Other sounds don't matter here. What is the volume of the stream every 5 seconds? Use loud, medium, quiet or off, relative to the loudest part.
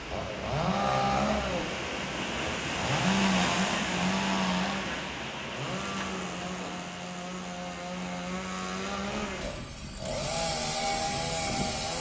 loud, medium, off.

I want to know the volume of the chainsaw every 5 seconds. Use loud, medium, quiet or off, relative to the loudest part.
loud, medium, loud.